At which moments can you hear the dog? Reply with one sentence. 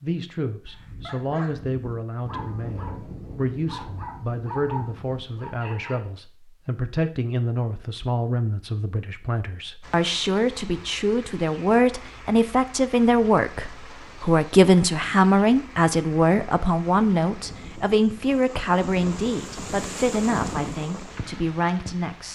You can hear the dog from 0.7 to 6.0 s.